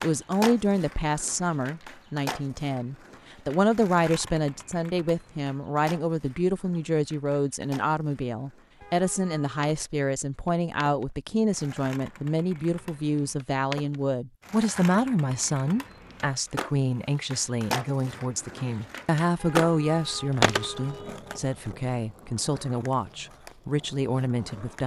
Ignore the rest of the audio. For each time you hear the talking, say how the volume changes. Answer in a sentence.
You can hear the talking from 0.0 to 24.8 s, at a steady volume.